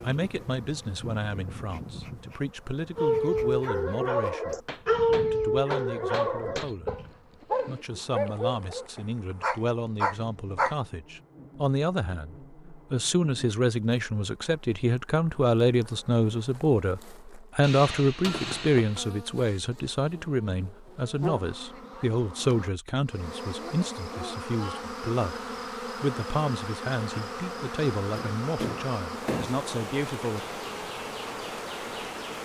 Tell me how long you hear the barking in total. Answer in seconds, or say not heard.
8 s.